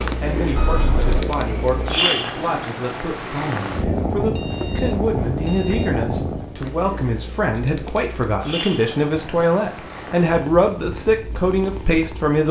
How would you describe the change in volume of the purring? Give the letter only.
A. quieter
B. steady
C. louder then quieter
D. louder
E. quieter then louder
A.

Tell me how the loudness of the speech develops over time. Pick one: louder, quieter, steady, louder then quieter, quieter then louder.
louder.